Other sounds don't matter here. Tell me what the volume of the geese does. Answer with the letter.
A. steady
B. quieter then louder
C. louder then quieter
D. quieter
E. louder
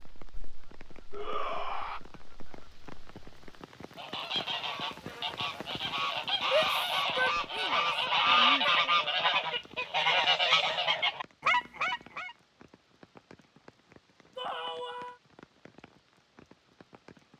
E.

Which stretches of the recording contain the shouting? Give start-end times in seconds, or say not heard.
1.1-2.0, 6.4-8.9, 14.3-15.2.